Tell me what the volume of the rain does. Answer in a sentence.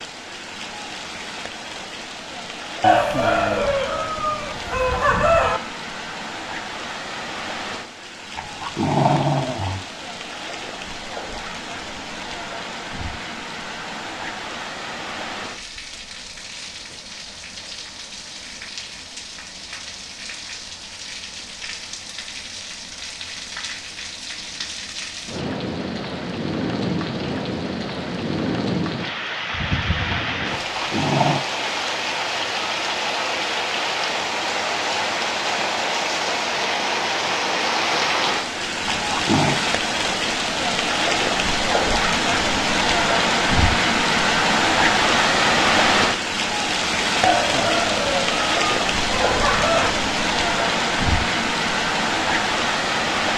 The loudness of the rain goes up.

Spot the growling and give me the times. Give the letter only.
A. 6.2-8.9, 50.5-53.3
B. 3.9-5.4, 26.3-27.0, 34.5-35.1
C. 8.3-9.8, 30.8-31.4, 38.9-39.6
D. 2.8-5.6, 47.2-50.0
C.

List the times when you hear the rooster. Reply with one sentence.
The rooster can be heard from 2.8 to 5.6 s and from 47.2 to 50.0 s.